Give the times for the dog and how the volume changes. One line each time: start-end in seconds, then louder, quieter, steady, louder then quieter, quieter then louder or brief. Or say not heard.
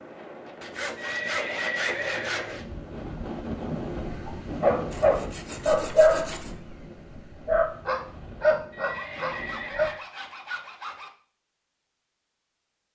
4.0-9.8 quieter then louder.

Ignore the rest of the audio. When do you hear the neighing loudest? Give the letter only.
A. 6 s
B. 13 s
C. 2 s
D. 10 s
C.